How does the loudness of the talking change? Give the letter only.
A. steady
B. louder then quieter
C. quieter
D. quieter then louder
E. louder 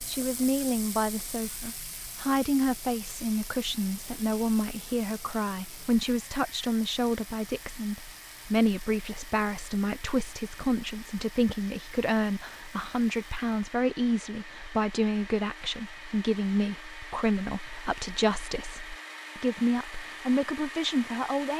A.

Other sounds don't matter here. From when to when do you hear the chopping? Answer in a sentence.
The chopping can't be heard in this clip.